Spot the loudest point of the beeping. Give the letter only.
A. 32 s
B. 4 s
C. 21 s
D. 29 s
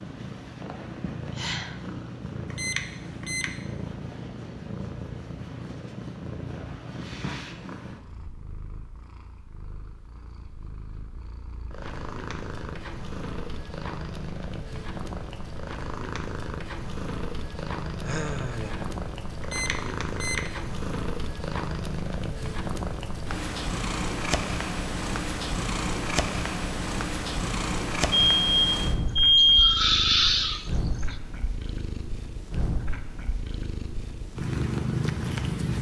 D.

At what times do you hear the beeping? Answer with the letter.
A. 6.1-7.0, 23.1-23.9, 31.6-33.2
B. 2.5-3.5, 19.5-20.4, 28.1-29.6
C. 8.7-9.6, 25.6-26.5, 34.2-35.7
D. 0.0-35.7
B.